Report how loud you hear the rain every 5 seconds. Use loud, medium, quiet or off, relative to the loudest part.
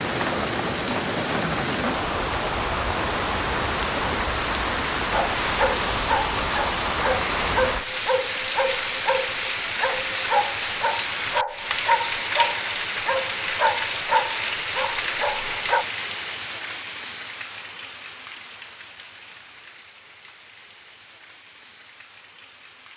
loud, loud, loud, medium, quiet.